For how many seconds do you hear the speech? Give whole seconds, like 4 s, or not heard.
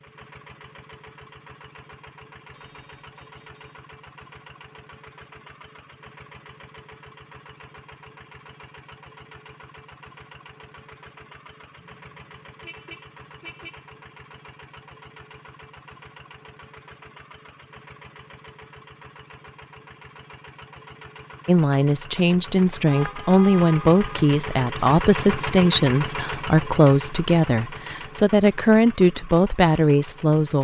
9 s.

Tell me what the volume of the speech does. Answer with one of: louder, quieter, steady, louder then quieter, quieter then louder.
steady.